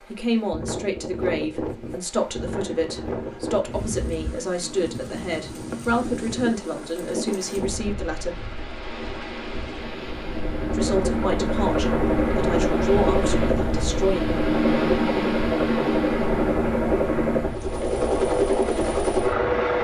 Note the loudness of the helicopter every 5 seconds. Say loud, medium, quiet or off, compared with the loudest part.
quiet, quiet, loud, loud.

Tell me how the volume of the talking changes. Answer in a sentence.
The volume of the talking stays about the same.